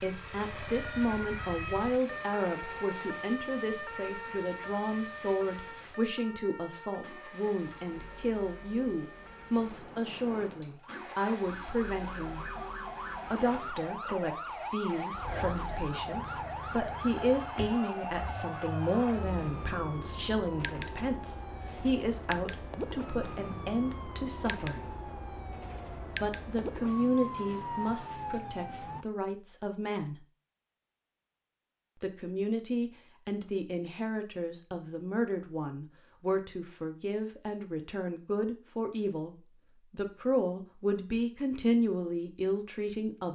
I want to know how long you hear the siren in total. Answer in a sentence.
You can hear the siren for 29 seconds altogether.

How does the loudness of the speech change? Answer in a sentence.
The loudness of the speech stays about the same.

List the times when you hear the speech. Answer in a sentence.
The speech can be heard from 0.0 to 12.5 s, from 13.3 to 24.9 s, from 26.1 to 30.2 s and from 32.0 to 43.3 s.